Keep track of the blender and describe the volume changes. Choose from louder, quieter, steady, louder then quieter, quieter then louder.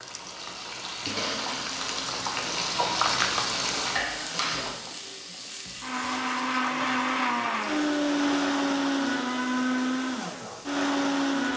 louder.